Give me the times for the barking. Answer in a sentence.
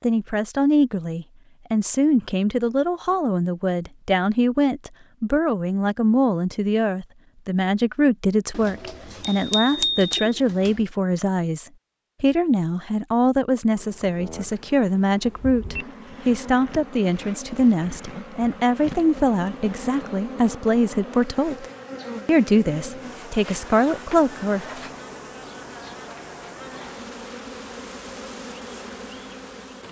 You can't hear the barking here.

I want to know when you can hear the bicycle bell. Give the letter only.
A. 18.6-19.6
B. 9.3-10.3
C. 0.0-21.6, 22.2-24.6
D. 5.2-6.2
B.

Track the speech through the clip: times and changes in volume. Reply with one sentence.
The speech can be heard from 0.0 to 21.6 s, at a steady volume; and briefly from 22.2 to 24.6 s.